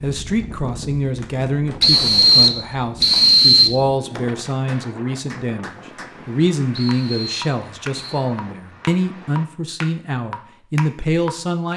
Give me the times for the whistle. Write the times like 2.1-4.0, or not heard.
1.8-3.7, 6.7-8.2.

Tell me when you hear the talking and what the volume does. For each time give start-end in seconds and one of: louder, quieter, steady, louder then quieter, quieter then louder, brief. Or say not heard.
0.0-11.7 steady.